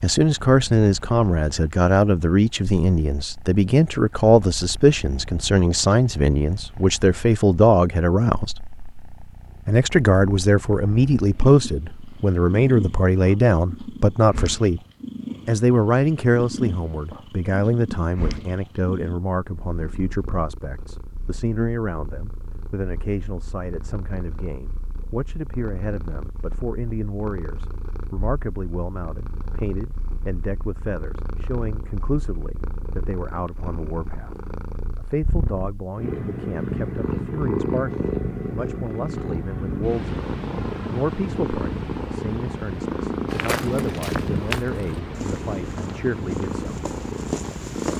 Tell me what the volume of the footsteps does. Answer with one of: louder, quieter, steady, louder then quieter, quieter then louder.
quieter then louder.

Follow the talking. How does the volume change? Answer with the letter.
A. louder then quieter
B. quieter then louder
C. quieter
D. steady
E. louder
C.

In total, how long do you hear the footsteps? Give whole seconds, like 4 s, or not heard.
5 s.